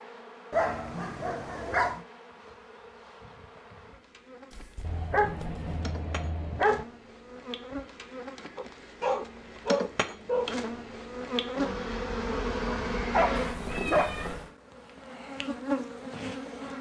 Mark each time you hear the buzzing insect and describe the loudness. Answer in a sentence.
You can hear the buzzing insect from 0.0 to 16.7 s, getting louder.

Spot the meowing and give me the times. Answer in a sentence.
The meowing can be heard from 4.5 to 5.8 s and from 13.3 to 14.5 s.